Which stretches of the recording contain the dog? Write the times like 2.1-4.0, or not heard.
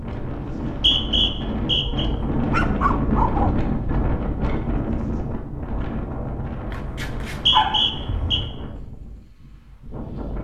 1.6-3.5, 6.7-8.4.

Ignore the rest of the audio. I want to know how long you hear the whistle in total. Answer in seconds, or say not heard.
3 s.